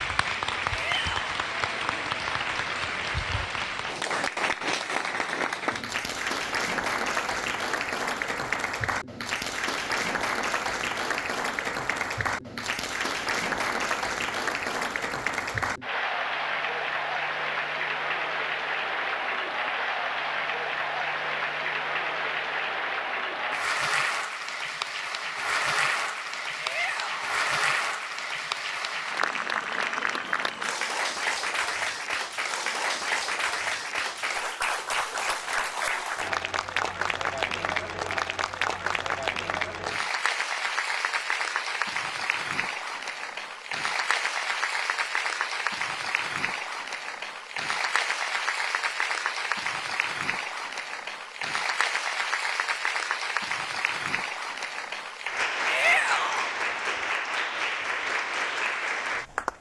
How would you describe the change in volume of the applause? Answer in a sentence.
The volume of the applause stays about the same.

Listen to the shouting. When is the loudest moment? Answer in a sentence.
The loudest moment of the shouting is at 56 seconds.